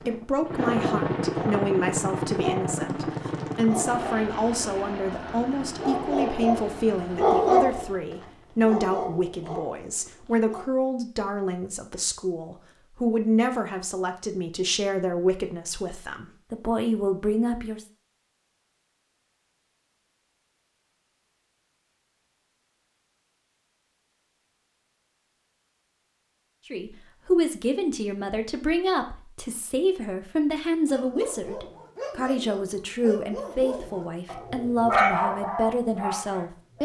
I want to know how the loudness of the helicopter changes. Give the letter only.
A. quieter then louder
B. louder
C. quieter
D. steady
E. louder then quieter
C.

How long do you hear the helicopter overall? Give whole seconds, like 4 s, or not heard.
8 s.